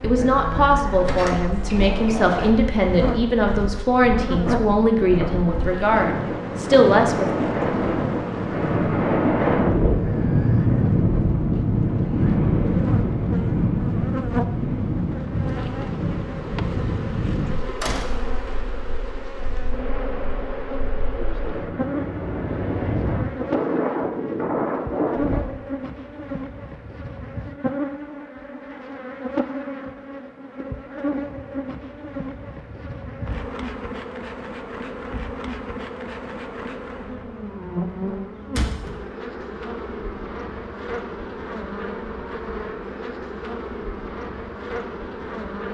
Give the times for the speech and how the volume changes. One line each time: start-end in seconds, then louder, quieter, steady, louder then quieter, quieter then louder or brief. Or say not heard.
0.0-7.3 steady.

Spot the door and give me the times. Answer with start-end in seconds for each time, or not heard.
1.0-2.5, 17.8-18.4, 38.5-39.0.